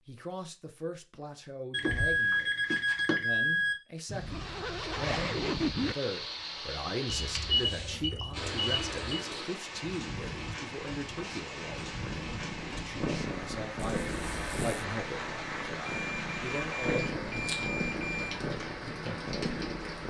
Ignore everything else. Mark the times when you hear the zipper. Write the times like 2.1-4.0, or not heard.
4.0-6.0, 14.0-14.8.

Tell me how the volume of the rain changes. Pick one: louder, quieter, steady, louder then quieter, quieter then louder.
steady.